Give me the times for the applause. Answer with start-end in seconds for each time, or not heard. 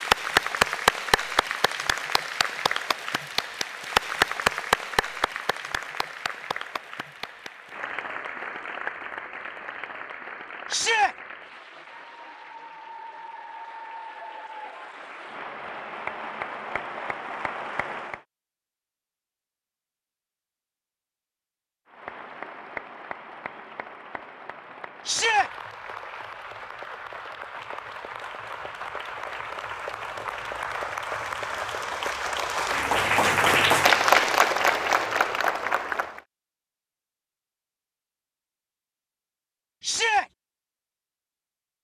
0.0-18.2, 21.9-36.2.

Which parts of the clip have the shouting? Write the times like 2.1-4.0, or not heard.
10.7-11.2, 25.1-25.5, 39.8-40.2.